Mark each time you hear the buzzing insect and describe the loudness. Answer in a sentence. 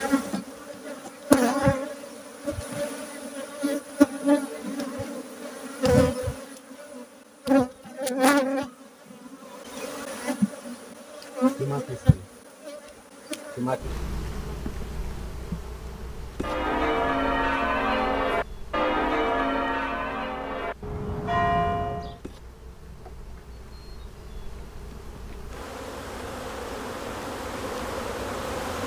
The buzzing insect can be heard from 0.0 to 28.8 s, getting quieter then louder.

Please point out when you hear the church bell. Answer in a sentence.
You can hear the church bell from 16.4 to 22.2 s.